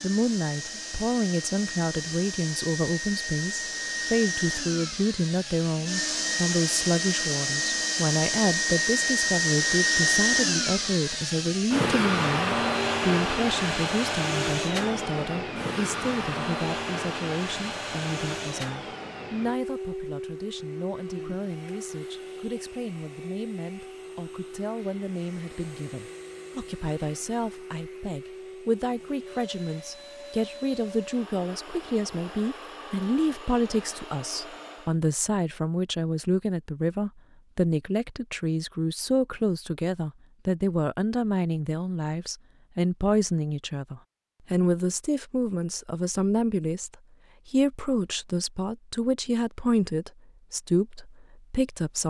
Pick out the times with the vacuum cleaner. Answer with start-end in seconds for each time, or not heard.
0.0-35.0.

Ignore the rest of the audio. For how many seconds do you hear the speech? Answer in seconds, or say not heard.
52 s.